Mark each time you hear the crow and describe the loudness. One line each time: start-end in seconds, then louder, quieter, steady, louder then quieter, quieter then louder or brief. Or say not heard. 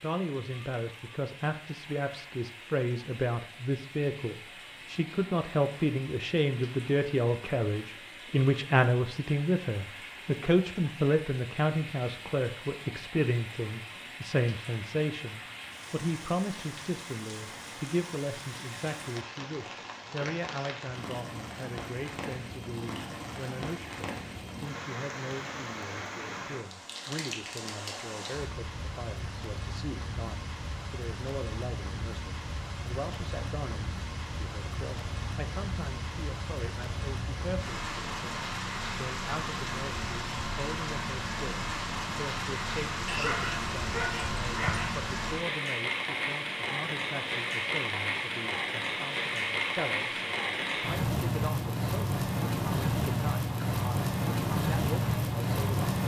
not heard.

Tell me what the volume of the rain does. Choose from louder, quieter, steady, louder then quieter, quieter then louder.
louder.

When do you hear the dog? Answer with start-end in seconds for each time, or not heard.
43.0-44.9.